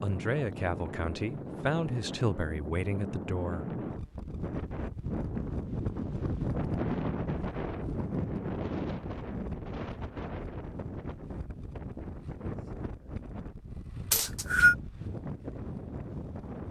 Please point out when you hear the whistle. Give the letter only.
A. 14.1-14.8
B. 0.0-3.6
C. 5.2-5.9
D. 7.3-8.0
A.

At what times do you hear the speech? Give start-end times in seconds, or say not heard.
0.0-3.6.